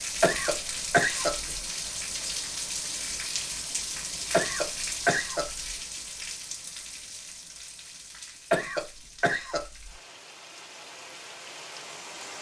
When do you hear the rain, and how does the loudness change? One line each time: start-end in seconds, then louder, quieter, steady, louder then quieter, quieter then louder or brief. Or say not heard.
0.0-12.3 quieter.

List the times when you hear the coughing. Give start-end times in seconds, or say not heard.
0.2-1.6, 4.3-5.7, 8.5-9.9.